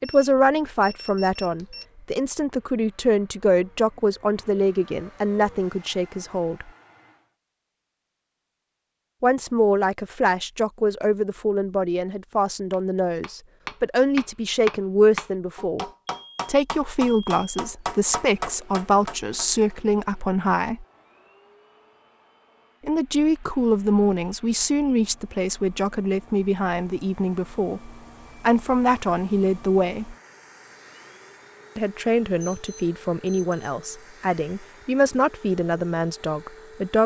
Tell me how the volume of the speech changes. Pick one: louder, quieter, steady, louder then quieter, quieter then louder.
steady.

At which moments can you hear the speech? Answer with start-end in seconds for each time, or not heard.
0.0-6.7, 9.2-15.8, 16.4-20.9, 22.9-30.1, 31.8-37.0.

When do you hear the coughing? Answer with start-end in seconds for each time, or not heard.
not heard.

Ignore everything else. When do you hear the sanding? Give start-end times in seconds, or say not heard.
not heard.